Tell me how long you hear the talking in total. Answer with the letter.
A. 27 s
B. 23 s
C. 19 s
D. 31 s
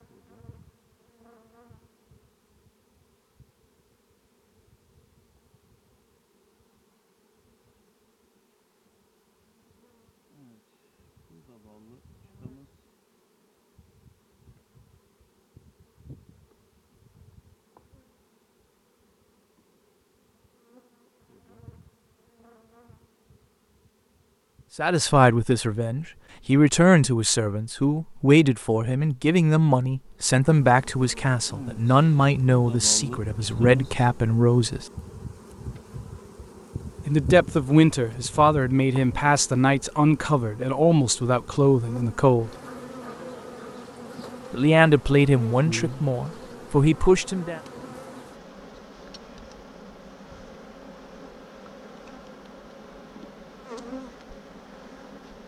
C.